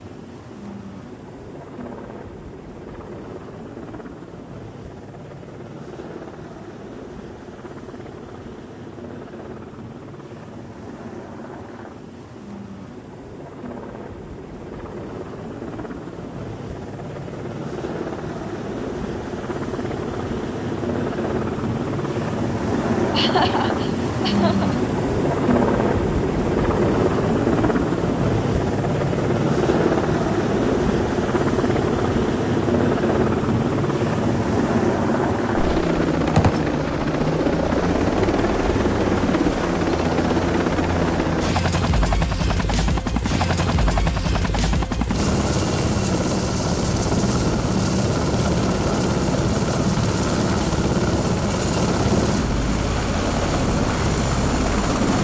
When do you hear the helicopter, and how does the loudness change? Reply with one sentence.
You can hear the helicopter from 0.0 to 55.1 s, getting louder.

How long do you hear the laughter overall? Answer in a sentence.
The laughter can be heard for 2 seconds in total.